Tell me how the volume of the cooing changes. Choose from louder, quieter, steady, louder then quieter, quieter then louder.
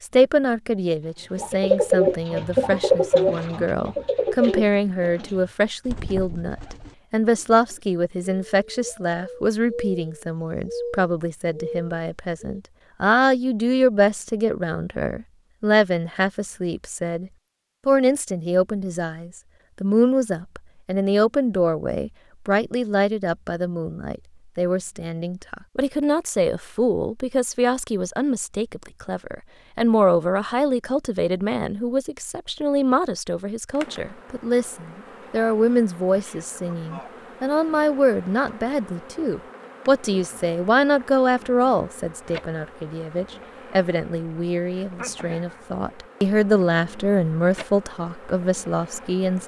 quieter then louder.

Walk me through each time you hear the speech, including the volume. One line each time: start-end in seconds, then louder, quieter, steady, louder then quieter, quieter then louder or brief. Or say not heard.
0.0-49.4 steady.